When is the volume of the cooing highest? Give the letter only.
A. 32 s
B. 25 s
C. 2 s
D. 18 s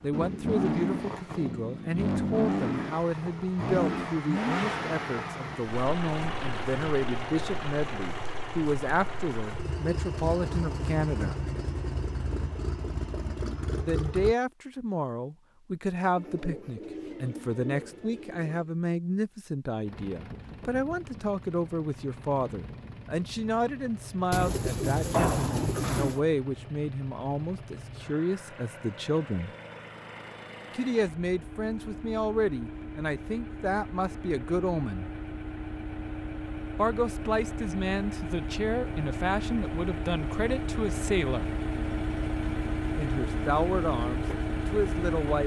B.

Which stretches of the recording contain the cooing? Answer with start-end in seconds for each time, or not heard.
16.1-18.7, 24.3-26.2.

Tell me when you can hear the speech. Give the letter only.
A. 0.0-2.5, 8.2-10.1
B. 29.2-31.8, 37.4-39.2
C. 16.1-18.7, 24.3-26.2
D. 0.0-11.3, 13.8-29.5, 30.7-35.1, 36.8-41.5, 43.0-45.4
D.